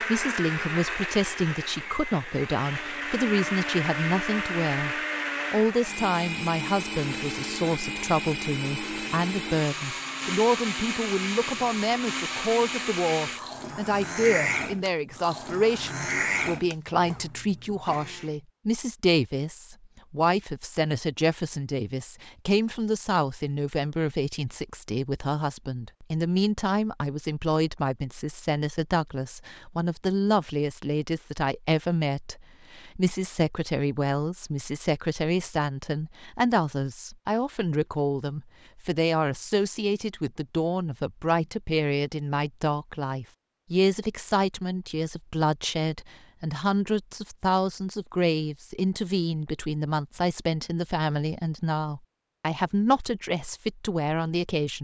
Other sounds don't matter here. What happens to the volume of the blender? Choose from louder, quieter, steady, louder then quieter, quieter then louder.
steady.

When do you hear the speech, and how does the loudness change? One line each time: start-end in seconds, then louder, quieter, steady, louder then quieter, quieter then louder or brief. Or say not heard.
0.0-54.7 steady.